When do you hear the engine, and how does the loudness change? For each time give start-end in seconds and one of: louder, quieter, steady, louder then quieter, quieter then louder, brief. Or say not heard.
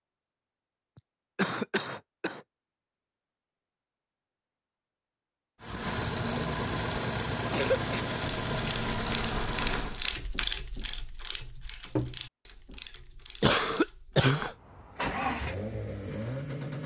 5.6-10.0 steady
14.5-16.8 brief.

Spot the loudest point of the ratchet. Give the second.
10 s.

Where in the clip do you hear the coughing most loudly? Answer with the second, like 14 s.
14 s.